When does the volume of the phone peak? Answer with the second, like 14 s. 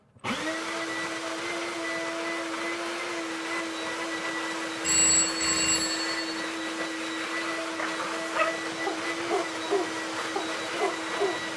5 s.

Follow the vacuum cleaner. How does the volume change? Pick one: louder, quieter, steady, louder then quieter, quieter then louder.
steady.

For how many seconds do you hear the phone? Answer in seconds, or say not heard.
2 s.